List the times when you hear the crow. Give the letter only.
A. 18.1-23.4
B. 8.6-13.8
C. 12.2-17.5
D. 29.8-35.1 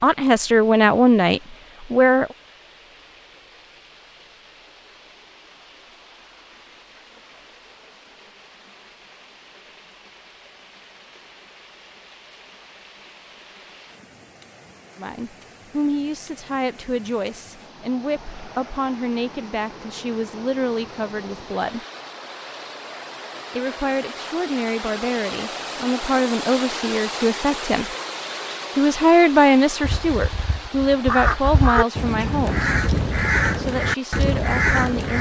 D.